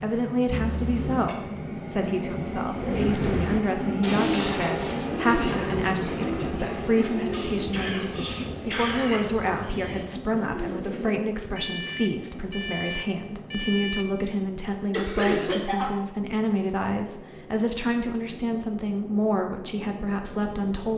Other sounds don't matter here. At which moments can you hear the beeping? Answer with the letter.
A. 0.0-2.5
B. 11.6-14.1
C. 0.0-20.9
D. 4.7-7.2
B.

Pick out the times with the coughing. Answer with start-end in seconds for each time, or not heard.
0.5-1.4, 7.3-9.3, 14.9-15.9.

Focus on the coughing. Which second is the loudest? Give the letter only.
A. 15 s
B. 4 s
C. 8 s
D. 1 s
A.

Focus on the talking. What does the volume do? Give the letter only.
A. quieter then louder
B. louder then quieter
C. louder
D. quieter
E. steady
E.